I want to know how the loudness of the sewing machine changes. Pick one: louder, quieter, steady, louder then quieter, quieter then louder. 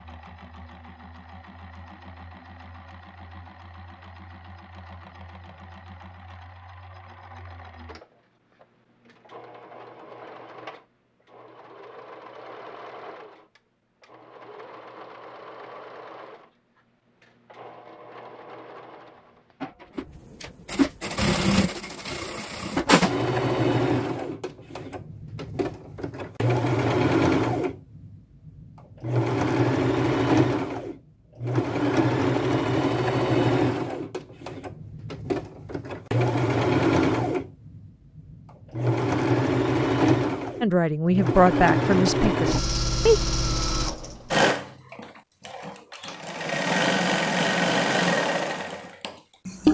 louder.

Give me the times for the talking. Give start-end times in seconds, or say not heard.
40.6-43.2.